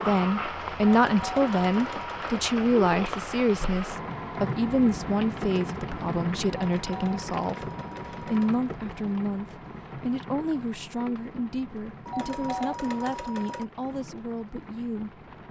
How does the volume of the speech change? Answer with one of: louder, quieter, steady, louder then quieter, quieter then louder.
quieter.